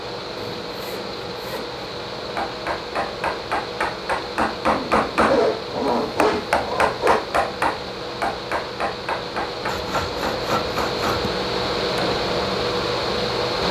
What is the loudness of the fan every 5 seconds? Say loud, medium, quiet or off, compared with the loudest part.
medium, medium, loud.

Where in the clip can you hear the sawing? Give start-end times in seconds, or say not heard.
0.3-1.8, 4.7-7.2, 9.7-11.3.